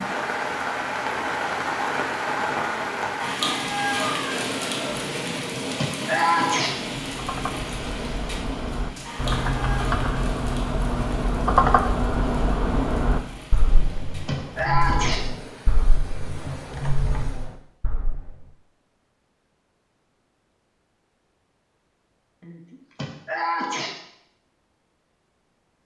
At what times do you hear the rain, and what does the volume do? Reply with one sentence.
The rain can be heard from 0.0 to 17.6 s, getting quieter.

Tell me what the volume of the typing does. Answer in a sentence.
The volume of the typing goes up, then down.